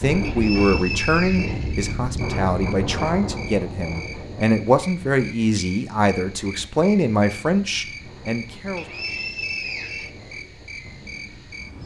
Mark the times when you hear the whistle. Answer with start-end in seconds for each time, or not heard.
0.2-2.2, 8.8-10.1.